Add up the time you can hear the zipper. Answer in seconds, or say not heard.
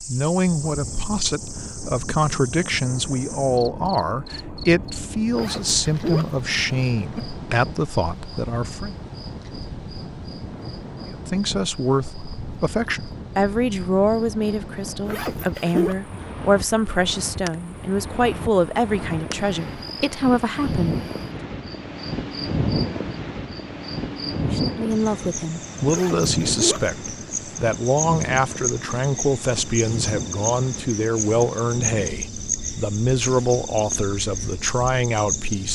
4 s.